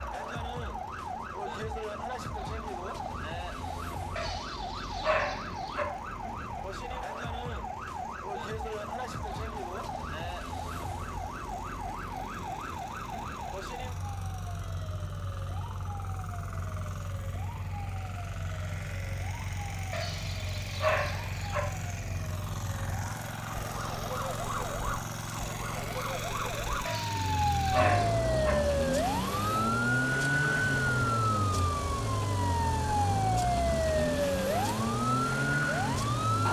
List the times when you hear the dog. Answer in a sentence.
You can hear the dog from 4.2 to 5.8 s, from 19.9 to 21.6 s and from 26.9 to 28.6 s.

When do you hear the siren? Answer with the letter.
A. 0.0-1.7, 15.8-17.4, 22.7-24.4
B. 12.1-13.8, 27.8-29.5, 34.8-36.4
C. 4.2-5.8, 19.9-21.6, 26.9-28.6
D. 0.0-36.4
D.